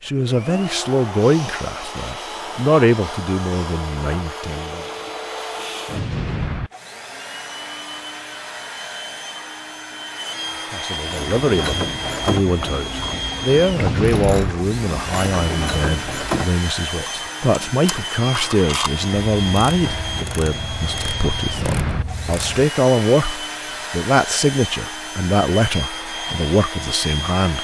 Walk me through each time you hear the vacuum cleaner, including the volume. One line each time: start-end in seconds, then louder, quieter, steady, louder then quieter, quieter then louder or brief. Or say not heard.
0.1-27.5 steady.